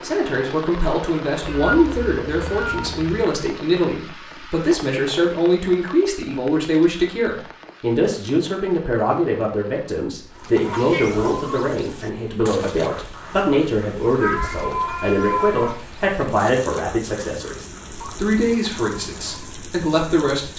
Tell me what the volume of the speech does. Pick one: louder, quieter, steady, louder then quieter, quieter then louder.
steady.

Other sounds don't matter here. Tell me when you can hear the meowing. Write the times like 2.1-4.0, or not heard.
1.4-3.1, 10.7-11.2, 14.2-15.8.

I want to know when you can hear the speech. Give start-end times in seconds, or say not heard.
0.0-20.5.